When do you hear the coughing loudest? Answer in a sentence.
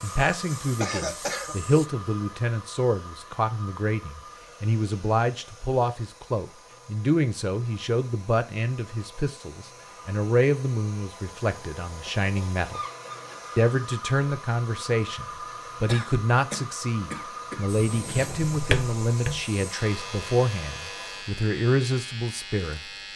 The loudest moment of the coughing is at 1 second.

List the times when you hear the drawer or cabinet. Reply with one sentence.
You can hear the drawer or cabinet from 17.9 to 19.4 s.